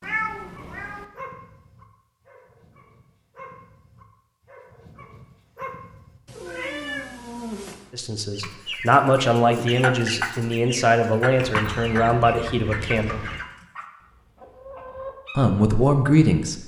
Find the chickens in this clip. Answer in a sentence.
The chickens can be heard from 8.3 to 15.5 s.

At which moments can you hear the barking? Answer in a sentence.
The barking can be heard from 0.5 to 6.2 s.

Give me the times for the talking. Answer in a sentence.
You can hear the talking from 7.9 to 13.2 s and from 15.3 to 16.6 s.